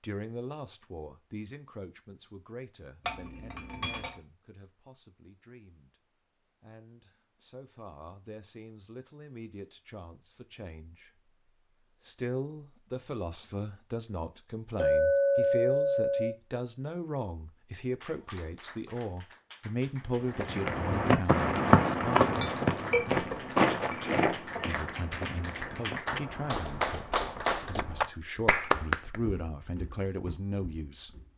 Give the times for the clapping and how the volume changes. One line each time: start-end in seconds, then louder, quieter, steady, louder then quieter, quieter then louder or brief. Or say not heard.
18.0-29.2 louder.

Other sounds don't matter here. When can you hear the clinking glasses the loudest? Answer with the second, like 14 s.
15 s.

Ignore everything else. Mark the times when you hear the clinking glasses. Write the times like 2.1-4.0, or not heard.
3.0-4.2, 14.8-16.3, 22.4-24.6.